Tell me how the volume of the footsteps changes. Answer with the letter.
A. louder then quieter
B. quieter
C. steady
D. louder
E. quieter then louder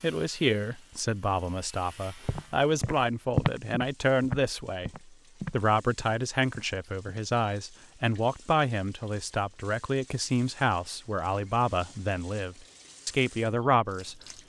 B.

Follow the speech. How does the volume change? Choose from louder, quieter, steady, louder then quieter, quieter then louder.
steady.